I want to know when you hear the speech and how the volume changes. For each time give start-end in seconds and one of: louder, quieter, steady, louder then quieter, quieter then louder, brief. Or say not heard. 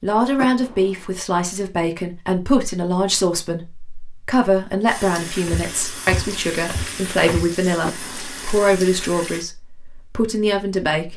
0.0-11.1 steady.